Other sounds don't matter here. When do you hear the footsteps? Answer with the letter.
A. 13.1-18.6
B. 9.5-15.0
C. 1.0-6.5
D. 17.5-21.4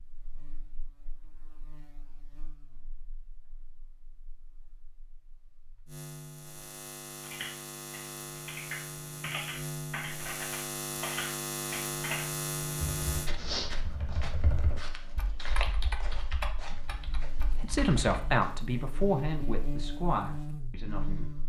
A.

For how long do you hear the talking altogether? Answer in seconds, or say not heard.
4 s.